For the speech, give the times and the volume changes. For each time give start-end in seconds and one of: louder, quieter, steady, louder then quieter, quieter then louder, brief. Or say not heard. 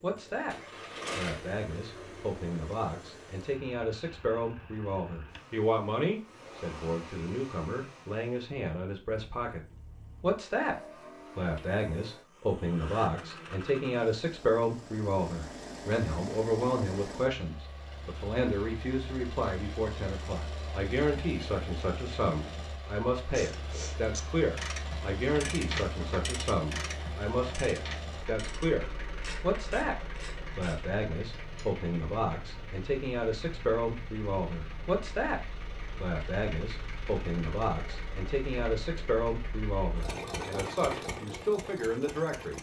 0.0-0.6 brief
1.1-35.4 steady
36.0-42.5 steady.